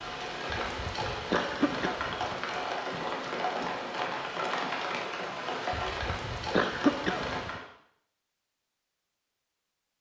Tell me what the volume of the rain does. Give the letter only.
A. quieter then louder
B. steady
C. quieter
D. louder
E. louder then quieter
B.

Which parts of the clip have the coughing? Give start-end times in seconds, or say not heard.
0.5-2.4, 5.7-7.6.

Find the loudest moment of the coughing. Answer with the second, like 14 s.
7 s.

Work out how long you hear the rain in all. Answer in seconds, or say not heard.
8 s.